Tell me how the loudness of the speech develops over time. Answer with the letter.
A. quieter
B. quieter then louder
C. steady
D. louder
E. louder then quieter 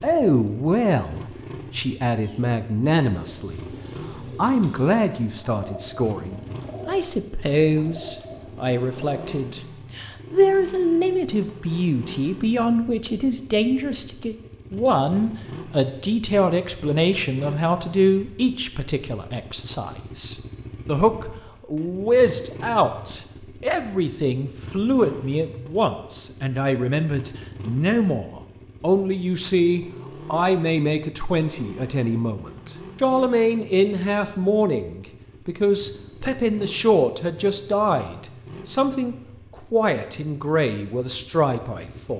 C.